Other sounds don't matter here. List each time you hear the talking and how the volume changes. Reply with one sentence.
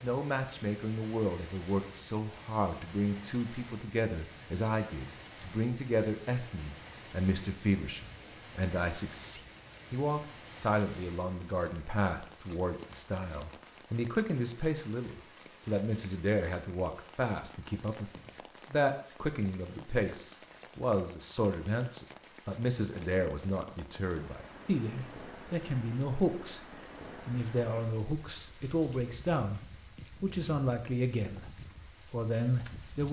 You can hear the talking from 0.0 to 33.0 s, at a steady volume.